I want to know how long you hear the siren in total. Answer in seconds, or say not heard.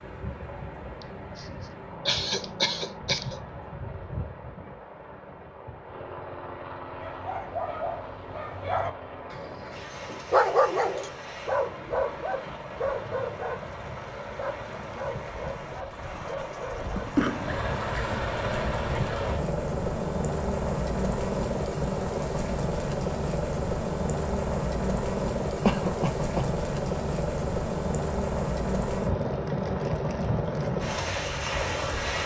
not heard.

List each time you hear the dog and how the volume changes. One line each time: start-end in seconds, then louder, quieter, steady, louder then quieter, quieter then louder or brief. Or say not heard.
7.0-17.1 louder then quieter.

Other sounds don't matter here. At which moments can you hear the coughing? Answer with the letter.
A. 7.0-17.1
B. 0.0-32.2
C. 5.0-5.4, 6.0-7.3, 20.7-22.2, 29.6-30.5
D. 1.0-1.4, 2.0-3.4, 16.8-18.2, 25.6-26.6
D.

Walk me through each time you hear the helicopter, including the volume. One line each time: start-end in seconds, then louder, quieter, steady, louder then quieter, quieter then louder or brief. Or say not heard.
0.0-32.2 louder.